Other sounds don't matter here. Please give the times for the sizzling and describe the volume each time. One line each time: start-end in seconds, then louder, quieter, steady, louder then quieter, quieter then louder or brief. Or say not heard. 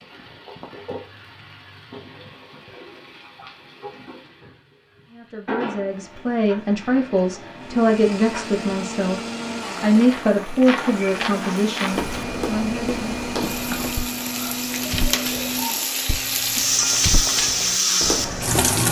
0.0-18.8 louder.